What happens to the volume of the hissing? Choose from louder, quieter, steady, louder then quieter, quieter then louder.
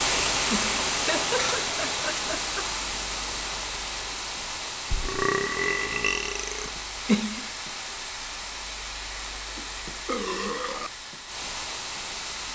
quieter.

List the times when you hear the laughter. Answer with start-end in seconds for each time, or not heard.
0.5-2.7, 6.7-7.5.